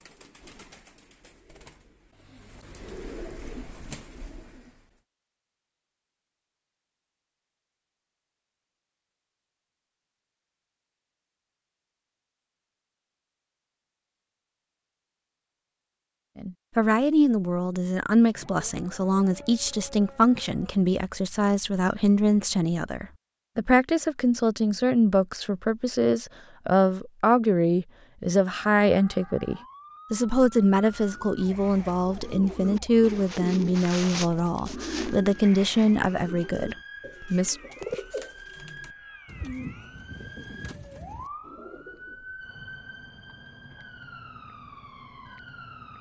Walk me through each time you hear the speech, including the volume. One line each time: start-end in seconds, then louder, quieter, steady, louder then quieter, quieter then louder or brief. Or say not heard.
16.4-37.5 steady.